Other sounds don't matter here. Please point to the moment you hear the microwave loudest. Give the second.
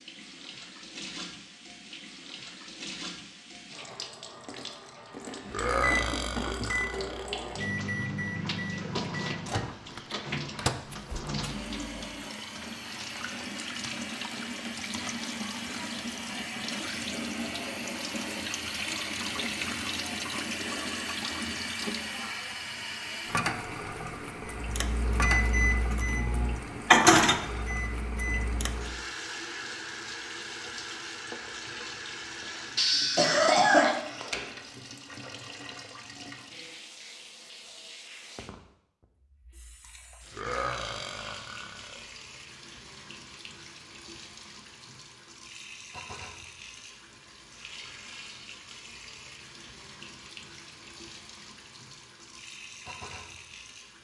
27 s.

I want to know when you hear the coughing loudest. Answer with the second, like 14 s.
34 s.